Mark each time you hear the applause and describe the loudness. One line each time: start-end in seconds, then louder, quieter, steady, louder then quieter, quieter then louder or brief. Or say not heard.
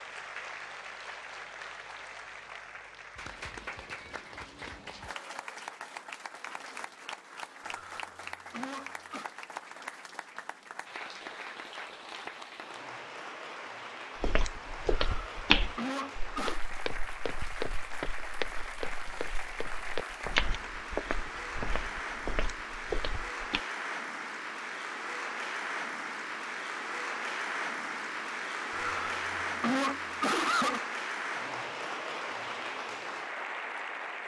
0.0-34.2 louder.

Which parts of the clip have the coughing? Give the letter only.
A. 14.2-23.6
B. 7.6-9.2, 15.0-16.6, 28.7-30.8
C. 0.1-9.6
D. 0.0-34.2
B.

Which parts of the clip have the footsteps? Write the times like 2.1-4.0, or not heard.
14.2-23.6.